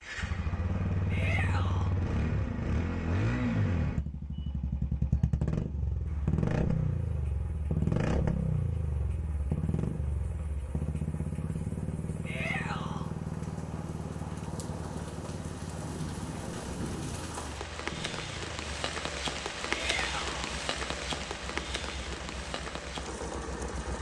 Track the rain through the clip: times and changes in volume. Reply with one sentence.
You can hear the rain from 6.0 to 23.9 s, getting louder.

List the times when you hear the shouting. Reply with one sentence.
The shouting can be heard from 1.1 to 1.9 s, from 12.2 to 13.1 s and from 19.7 to 20.6 s.